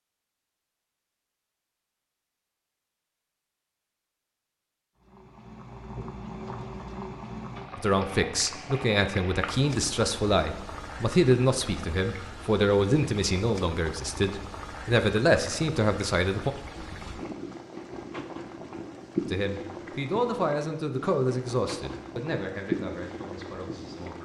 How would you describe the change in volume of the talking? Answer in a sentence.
The volume of the talking goes down.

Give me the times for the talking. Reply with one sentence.
The talking can be heard from 7.8 to 16.5 s and from 19.2 to 24.2 s.